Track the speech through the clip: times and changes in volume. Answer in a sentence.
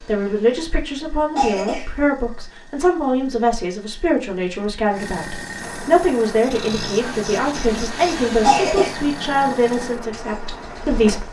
The speech can be heard from 0.0 to 11.2 s, at a steady volume.